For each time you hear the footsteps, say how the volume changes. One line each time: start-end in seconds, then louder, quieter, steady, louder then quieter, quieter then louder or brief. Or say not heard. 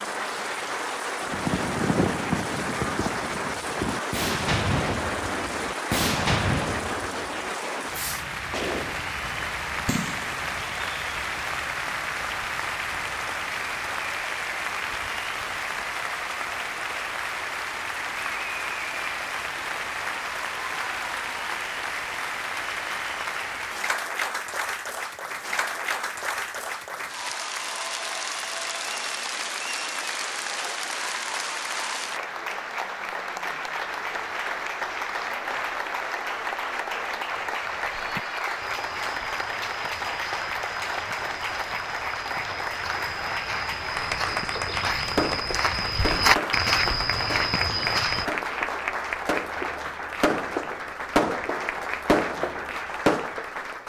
38.0-48.2 louder.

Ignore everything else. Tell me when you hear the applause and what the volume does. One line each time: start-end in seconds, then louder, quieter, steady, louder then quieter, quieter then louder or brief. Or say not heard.
0.0-53.8 steady.